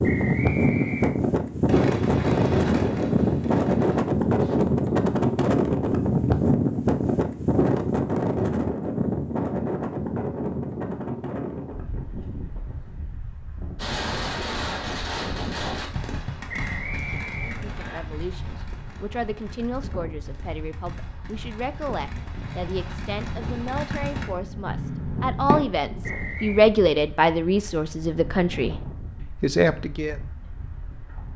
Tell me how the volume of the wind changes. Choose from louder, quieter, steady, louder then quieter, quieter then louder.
quieter.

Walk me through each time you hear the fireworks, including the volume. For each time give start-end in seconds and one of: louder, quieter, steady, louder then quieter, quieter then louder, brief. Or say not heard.
1.6-4.6 brief
13.8-25.6 quieter then louder.